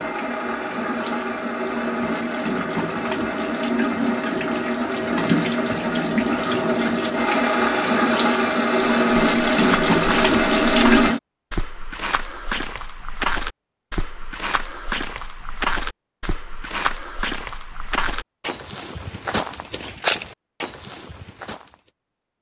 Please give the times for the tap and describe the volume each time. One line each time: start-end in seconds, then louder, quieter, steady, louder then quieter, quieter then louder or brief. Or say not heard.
0.0-11.2 louder.